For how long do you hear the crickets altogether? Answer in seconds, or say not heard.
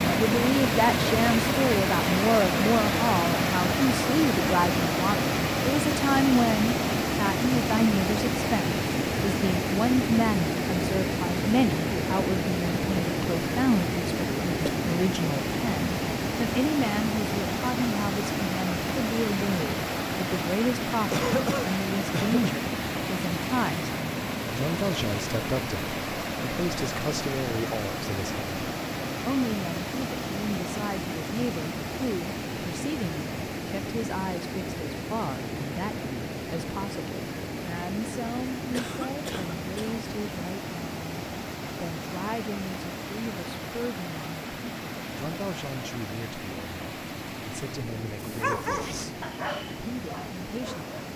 not heard.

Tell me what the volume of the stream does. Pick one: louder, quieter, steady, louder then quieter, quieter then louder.
quieter.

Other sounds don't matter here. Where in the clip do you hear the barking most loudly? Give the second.
49 s.